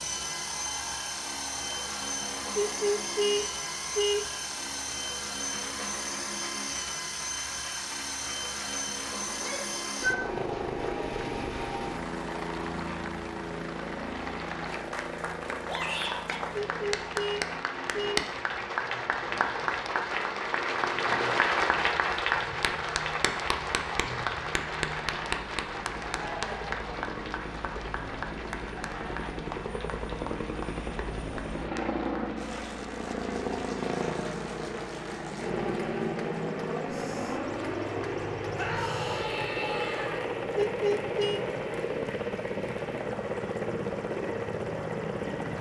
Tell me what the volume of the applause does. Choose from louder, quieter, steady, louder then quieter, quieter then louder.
louder then quieter.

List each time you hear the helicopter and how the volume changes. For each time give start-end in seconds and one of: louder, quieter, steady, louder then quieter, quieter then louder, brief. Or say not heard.
0.0-45.5 quieter then louder.